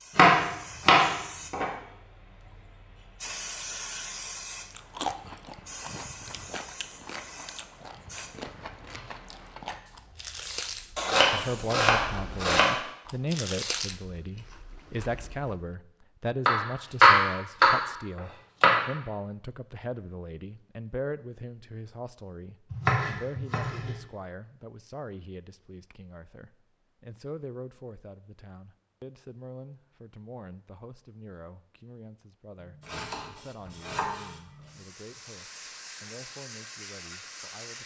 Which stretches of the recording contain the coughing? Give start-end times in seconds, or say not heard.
not heard.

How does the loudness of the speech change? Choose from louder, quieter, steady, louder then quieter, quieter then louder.
quieter.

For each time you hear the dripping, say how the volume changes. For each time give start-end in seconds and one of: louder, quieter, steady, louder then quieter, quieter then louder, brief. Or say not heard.
not heard.